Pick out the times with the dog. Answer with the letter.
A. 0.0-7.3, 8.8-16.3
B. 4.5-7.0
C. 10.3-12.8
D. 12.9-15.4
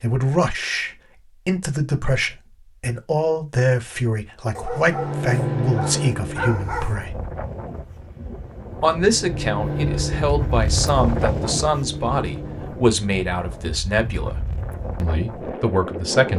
B.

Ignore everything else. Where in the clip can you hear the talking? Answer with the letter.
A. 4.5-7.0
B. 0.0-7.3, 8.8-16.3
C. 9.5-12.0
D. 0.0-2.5
B.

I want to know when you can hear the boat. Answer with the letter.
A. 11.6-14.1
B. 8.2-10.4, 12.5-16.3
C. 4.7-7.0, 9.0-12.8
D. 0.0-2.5
C.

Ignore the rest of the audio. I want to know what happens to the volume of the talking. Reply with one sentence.
The volume of the talking stays about the same.